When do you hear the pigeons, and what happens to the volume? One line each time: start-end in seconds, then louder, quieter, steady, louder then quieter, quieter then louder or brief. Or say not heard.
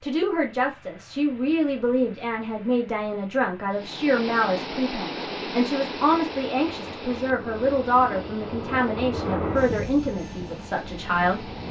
not heard.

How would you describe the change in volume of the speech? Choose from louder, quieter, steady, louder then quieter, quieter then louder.
steady.